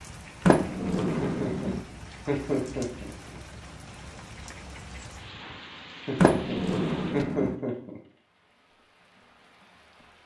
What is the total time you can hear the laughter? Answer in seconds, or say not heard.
4 s.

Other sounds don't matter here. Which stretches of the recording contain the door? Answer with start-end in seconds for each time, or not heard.
0.5-1.8, 6.2-7.5.